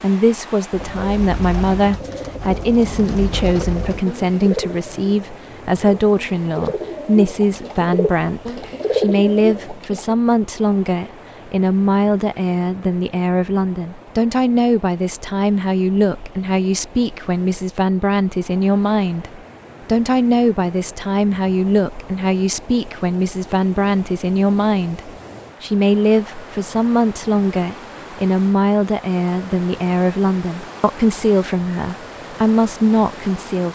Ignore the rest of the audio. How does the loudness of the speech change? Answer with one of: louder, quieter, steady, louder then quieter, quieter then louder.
steady.